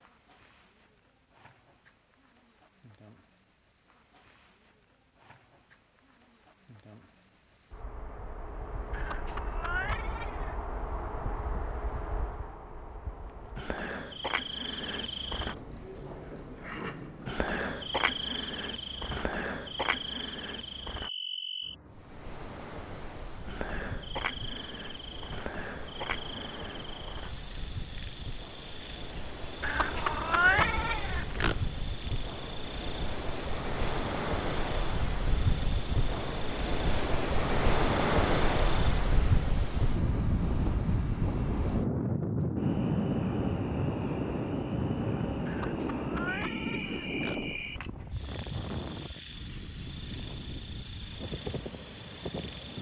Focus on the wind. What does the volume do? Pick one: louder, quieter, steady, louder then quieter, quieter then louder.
louder then quieter.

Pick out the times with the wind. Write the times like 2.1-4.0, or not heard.
21.9-52.7.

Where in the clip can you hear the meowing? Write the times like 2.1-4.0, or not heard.
8.9-10.6, 29.6-31.6, 45.5-47.4.